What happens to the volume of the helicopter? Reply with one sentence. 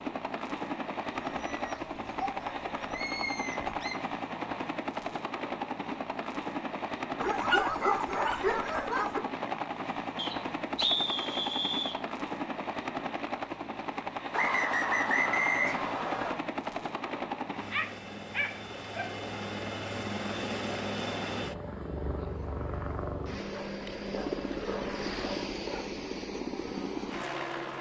The volume of the helicopter stays about the same.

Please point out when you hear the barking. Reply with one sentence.
The barking can be heard from 1.1 to 4.0 s, from 7.2 to 9.2 s, from 17.5 to 19.1 s and from 23.5 to 25.9 s.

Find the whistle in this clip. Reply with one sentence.
The whistle can be heard from 10.2 to 12.0 s and from 14.3 to 16.4 s.